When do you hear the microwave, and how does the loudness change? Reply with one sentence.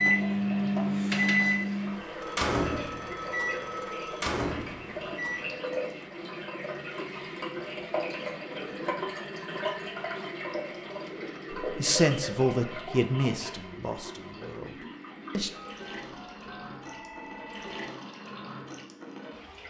The microwave can be heard from 0.0 to 5.7 s, getting quieter.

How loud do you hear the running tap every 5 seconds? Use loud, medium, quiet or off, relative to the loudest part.
medium, loud, loud, medium.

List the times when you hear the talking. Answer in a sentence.
You can hear the talking from 11.6 to 15.5 s.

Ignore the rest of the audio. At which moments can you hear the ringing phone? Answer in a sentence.
The ringing phone can be heard from 2.1 to 4.3 s and from 15.6 to 17.9 s.